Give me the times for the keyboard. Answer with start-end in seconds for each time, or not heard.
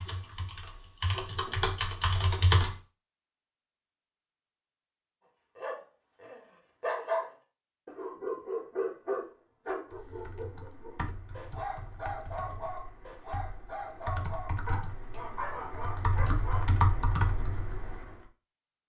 0.0-2.8, 9.9-18.2.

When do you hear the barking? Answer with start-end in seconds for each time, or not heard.
5.5-16.8.